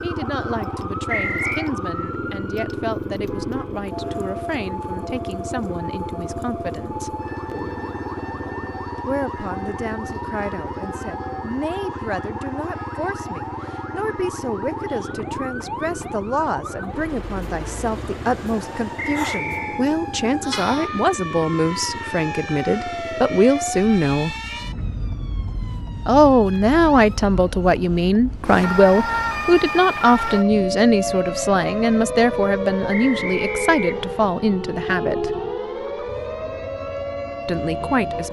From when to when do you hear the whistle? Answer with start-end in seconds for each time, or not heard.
1.1-1.7, 18.9-19.9, 32.9-34.1.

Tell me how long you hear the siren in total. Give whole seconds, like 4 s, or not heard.
38 s.